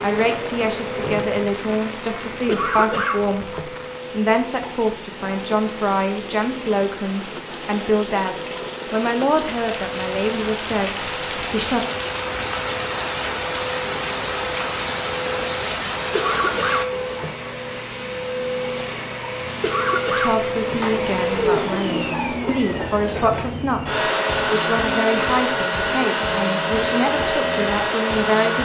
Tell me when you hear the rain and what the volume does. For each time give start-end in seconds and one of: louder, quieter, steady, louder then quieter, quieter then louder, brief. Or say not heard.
0.0-16.9 louder.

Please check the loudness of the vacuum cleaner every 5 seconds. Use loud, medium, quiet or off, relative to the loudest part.
medium, quiet, medium, medium, loud, loud.